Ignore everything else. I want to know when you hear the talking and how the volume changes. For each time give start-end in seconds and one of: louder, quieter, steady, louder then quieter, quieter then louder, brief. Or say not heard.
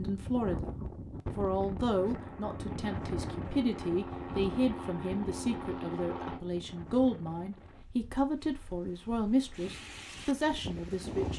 0.0-0.8 brief
1.4-11.3 steady.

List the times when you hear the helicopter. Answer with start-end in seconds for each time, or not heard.
1.9-6.4.